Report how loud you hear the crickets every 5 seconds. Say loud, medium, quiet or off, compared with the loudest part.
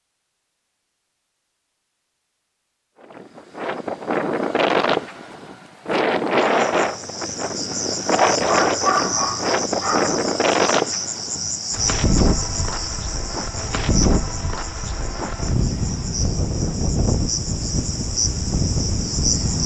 off, loud, loud, loud.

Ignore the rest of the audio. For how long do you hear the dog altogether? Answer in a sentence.
The dog can be heard for 2 seconds in total.